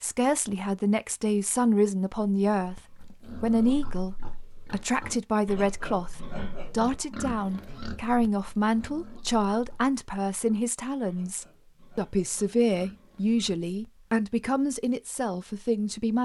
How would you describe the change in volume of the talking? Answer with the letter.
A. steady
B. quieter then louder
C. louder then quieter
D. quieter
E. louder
A.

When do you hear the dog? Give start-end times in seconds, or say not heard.
not heard.